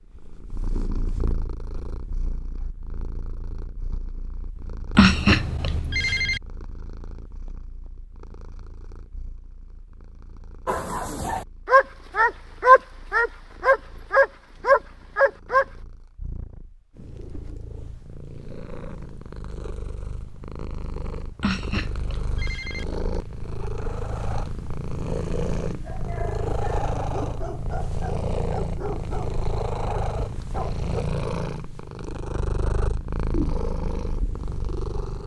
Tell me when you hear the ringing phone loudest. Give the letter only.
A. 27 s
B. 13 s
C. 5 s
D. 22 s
C.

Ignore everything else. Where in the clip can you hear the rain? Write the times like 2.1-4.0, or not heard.
not heard.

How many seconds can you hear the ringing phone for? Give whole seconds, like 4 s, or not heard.
3 s.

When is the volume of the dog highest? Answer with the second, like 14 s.
13 s.